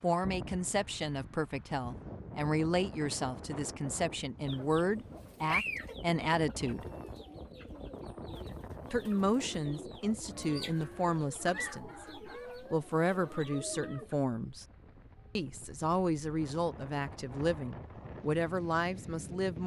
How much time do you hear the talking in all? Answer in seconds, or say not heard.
17 s.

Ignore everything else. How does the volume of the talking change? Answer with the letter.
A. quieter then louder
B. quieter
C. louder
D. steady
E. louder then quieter
D.